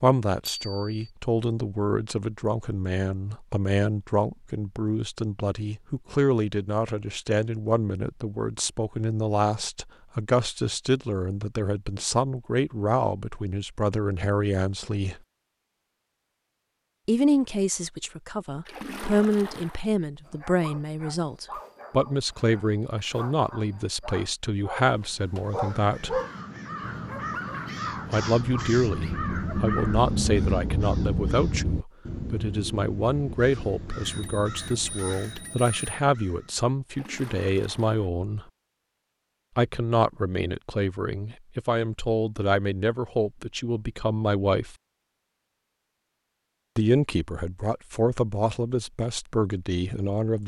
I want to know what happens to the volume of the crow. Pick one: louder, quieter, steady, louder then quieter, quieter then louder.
louder then quieter.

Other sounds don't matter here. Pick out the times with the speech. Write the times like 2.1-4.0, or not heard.
0.0-15.2, 17.1-26.2, 28.1-38.5, 39.5-44.8, 46.8-50.4.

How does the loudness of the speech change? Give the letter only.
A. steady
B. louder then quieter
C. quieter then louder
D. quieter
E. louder
A.